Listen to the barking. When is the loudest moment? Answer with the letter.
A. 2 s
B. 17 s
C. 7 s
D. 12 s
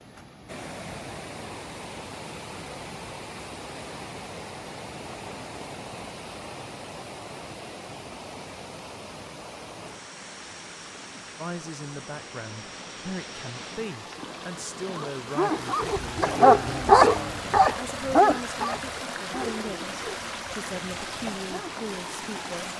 B.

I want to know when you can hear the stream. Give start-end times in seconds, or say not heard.
0.0-22.7.